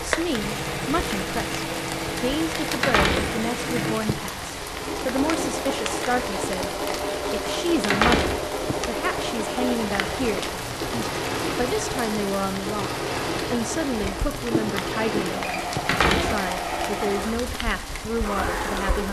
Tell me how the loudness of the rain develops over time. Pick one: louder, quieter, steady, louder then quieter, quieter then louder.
steady.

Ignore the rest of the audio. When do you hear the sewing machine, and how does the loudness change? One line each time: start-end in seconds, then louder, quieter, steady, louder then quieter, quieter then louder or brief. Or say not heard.
0.0-19.0 steady.